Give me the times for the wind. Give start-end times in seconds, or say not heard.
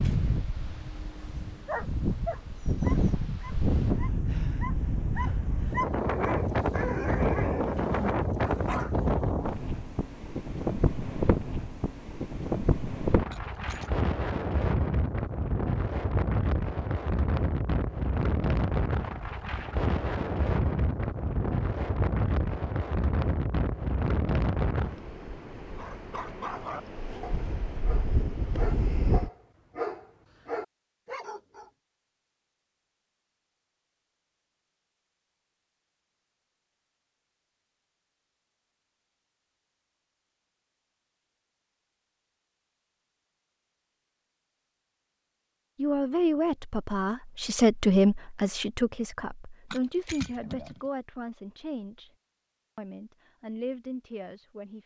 0.0-29.3.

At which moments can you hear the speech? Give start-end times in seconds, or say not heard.
45.8-52.1, 52.8-54.8.